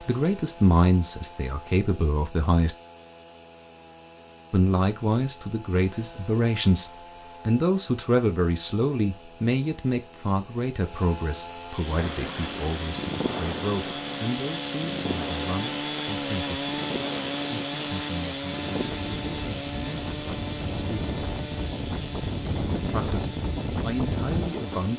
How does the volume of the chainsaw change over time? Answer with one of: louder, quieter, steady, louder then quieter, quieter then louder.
louder then quieter.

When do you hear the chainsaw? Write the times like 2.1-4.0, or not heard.
0.0-24.9.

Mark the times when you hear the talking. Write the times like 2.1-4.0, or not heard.
0.0-2.8, 4.5-16.6, 17.6-21.2, 22.8-24.9.